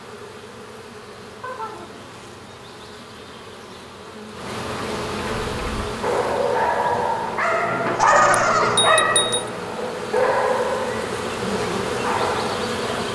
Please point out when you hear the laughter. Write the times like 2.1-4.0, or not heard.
1.4-2.0, 7.8-8.8.